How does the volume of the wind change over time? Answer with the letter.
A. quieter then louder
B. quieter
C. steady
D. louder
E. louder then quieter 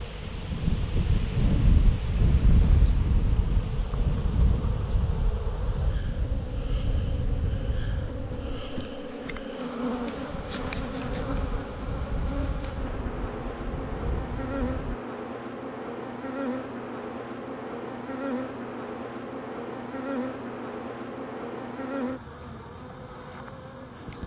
B.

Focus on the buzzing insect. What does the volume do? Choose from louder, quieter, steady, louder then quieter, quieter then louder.
louder.